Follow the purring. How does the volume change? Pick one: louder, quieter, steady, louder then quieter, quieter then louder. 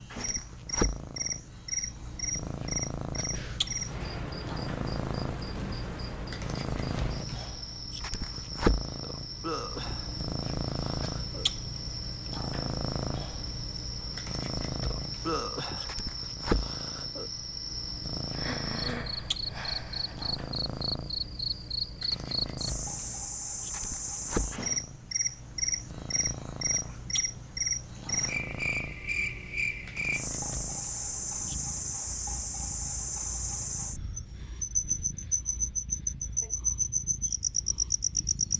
quieter.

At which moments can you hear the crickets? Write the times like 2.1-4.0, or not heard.
0.0-38.5.